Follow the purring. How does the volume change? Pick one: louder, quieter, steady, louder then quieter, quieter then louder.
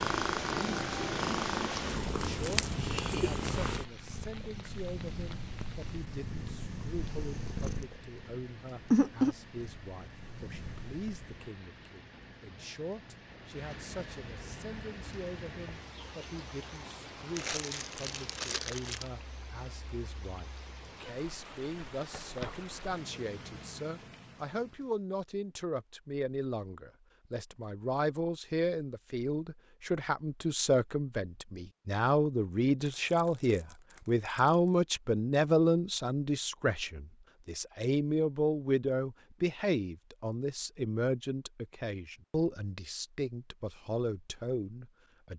quieter then louder.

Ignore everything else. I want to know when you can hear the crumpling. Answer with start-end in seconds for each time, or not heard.
2.2-2.8, 17.4-19.1, 32.9-34.7.